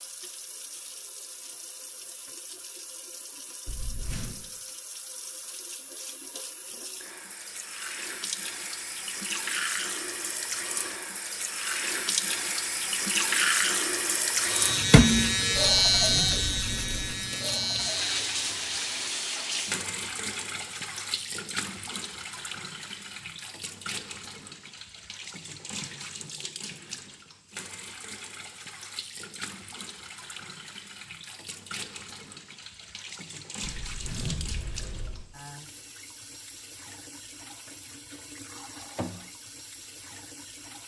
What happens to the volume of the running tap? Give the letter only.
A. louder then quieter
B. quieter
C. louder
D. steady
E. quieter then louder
A.